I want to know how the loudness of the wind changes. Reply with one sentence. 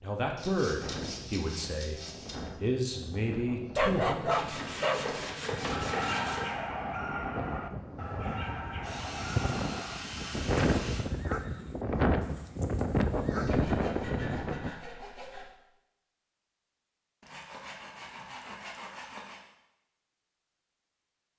The loudness of the wind goes up.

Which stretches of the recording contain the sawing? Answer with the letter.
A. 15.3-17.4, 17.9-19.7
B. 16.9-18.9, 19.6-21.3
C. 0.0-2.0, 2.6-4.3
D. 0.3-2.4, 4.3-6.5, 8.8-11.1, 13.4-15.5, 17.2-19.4
D.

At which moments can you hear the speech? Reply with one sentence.
The speech can be heard from 0.0 to 2.0 s and from 2.6 to 4.3 s.